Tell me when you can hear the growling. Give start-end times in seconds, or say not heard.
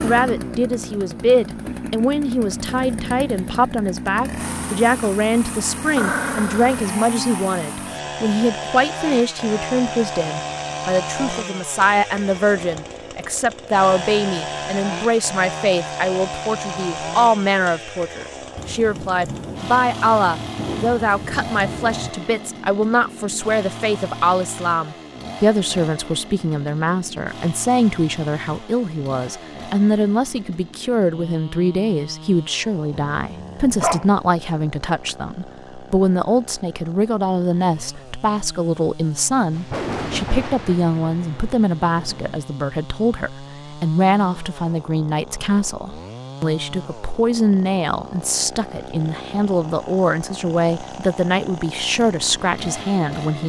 6.0-6.8, 33.1-34.1.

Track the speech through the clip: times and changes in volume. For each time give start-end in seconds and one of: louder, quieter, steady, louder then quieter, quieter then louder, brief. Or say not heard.
0.0-53.4 steady.